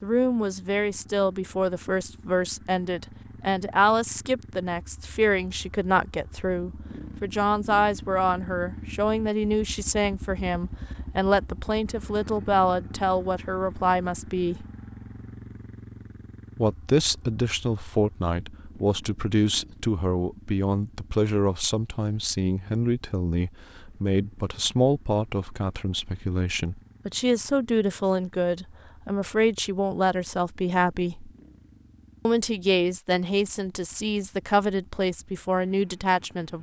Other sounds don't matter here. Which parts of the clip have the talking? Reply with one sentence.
The talking can be heard from 0.0 to 14.7 s, from 16.6 to 31.3 s and from 32.2 to 36.5 s.